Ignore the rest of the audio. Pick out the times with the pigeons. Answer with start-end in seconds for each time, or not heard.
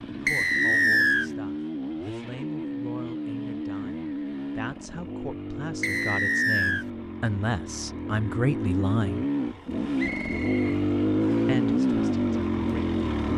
not heard.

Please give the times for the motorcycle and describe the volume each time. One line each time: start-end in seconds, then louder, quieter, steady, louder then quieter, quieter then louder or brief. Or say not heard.
0.0-13.3 louder.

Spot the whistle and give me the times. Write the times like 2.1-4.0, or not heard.
0.2-1.3, 5.8-6.8, 9.9-11.4.